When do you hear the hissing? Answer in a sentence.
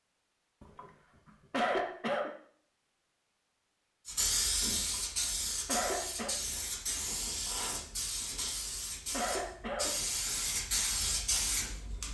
The hissing can be heard from 4.0 to 12.0 s.